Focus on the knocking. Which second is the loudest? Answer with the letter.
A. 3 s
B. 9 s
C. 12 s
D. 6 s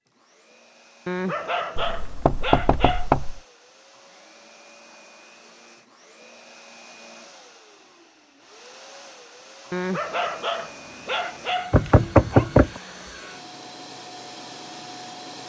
C.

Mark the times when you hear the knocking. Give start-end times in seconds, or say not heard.
1.8-3.4, 11.7-12.8.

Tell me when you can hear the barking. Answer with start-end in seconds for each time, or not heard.
1.1-3.1, 9.7-12.5.